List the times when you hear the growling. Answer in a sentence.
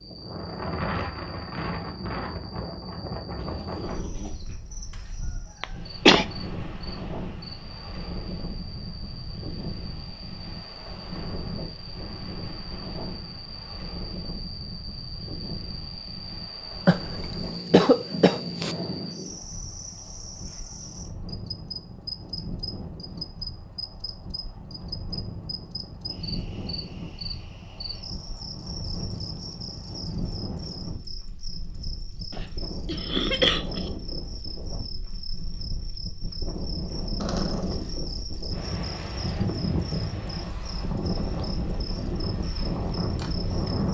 The growling can be heard from 3.4 to 4.6 s, from 17.4 to 19.1 s and from 37.2 to 38.0 s.